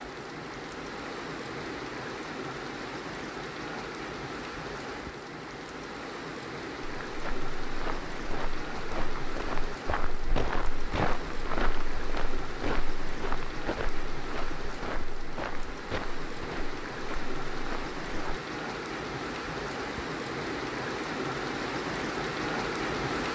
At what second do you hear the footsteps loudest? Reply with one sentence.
The volume of the footsteps peaks at 11 seconds.